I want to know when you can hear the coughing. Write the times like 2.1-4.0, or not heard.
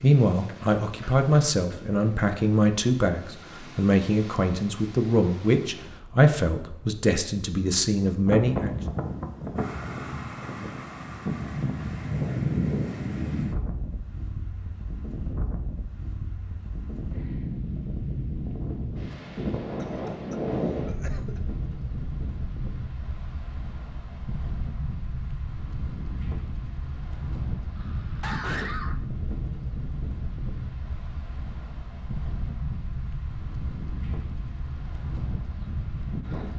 0.5-1.9, 19.8-21.4, 27.8-29.0.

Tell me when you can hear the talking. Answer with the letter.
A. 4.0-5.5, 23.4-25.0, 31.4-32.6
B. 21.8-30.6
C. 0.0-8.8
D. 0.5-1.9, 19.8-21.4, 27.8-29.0
C.